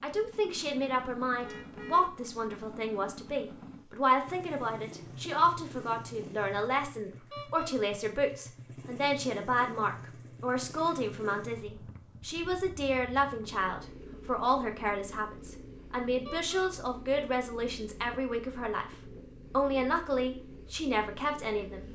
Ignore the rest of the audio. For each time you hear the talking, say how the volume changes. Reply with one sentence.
The talking can be heard from 0.0 to 21.9 s, at a steady volume.